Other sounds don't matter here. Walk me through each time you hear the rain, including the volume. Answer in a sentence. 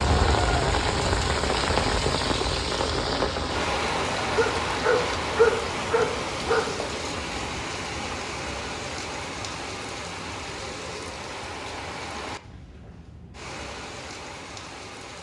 The rain can be heard from 0.0 to 15.1 s, getting quieter.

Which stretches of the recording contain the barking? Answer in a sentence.
You can hear the barking from 4.3 to 6.7 s.